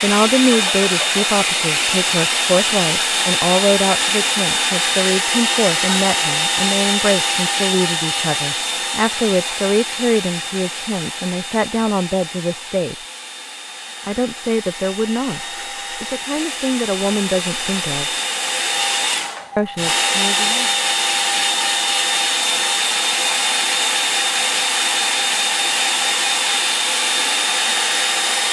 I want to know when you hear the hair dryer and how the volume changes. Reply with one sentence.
The hair dryer can be heard from 0.0 to 28.4 s, getting quieter then louder.